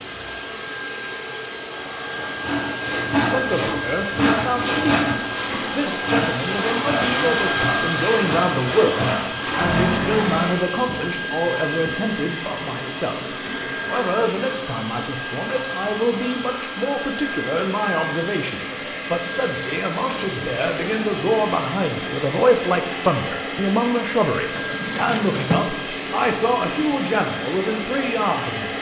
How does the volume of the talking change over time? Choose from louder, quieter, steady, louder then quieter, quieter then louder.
steady.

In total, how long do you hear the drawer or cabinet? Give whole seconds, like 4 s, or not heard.
3 s.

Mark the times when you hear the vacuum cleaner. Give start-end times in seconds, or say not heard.
0.0-28.7.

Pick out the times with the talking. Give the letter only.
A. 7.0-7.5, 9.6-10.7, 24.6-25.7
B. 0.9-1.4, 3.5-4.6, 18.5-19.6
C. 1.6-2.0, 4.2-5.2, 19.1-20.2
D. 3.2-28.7
D.